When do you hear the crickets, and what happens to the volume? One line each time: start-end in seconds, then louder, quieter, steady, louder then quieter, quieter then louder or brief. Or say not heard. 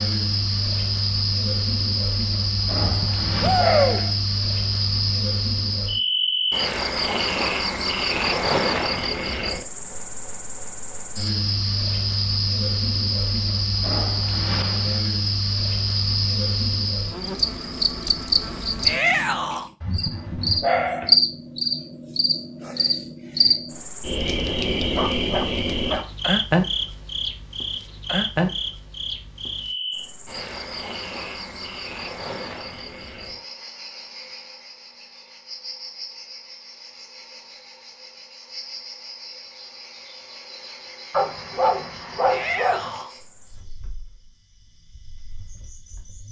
0.0-46.2 quieter.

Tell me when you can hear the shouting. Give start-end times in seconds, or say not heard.
3.4-4.0, 18.9-19.7, 42.2-43.1.